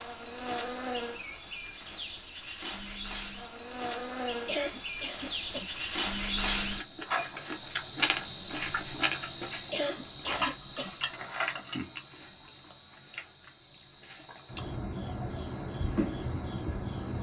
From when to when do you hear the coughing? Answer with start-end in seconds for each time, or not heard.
4.5-5.7, 9.7-10.9.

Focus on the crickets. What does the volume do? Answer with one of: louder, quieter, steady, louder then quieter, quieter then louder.
louder then quieter.